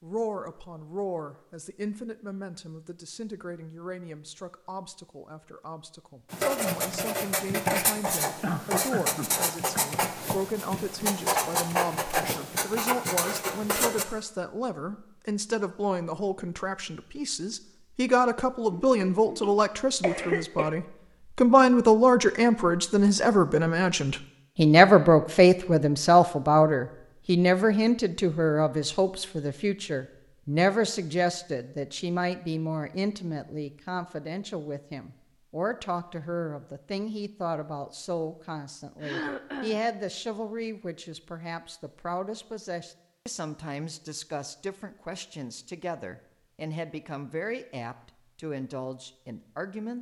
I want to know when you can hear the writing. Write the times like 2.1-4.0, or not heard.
6.3-14.1.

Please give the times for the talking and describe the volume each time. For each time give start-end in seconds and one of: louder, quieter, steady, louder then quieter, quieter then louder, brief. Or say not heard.
0.0-49.9 louder then quieter.